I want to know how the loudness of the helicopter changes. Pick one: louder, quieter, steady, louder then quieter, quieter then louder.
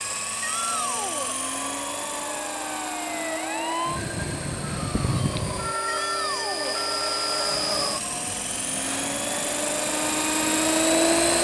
louder.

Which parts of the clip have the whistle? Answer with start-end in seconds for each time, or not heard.
not heard.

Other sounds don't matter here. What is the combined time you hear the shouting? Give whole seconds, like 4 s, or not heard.
2 s.